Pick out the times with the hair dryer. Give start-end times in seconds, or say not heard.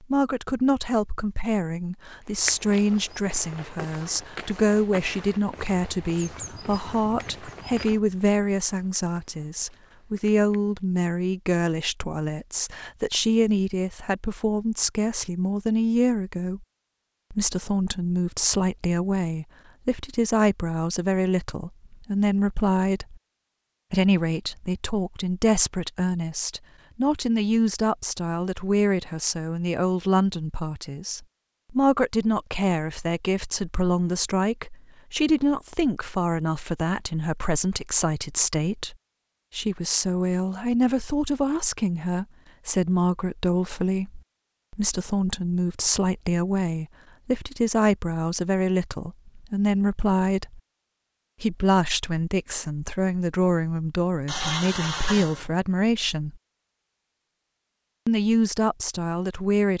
not heard.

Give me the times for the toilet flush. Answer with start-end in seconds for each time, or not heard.
54.2-55.5.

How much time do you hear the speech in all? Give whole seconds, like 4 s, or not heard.
56 s.